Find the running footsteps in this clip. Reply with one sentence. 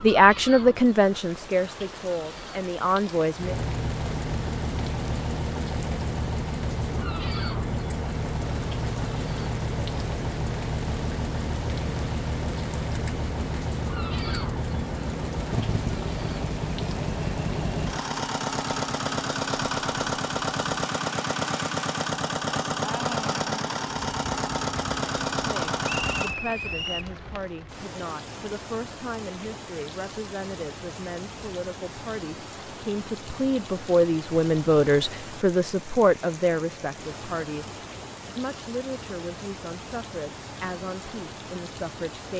The running footsteps can't be heard in this clip.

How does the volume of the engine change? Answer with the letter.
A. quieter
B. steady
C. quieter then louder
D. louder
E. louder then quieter
B.